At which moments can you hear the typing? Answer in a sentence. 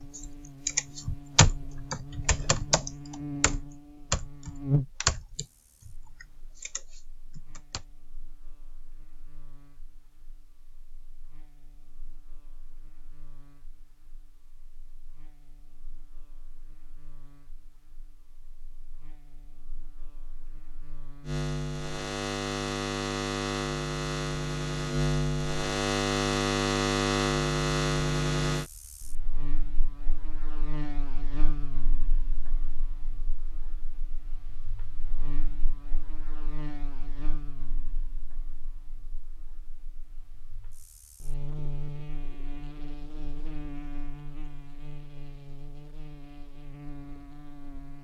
You can hear the typing from 0.1 to 7.8 s.